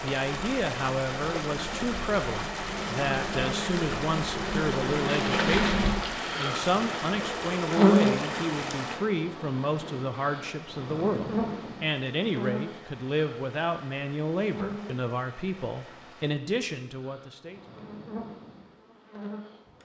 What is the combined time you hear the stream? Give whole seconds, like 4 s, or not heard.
16 s.